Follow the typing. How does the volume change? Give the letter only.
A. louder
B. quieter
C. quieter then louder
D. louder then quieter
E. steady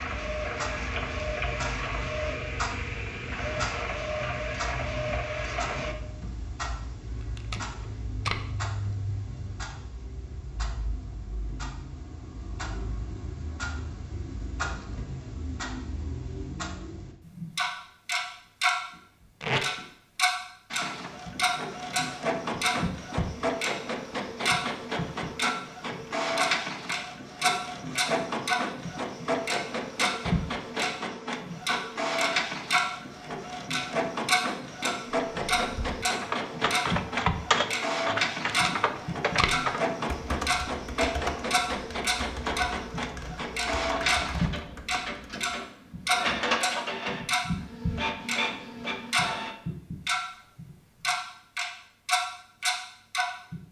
B.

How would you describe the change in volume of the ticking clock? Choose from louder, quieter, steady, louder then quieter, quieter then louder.
louder.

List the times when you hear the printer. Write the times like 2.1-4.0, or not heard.
0.0-6.0, 20.7-49.5.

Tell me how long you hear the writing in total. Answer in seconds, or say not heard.
not heard.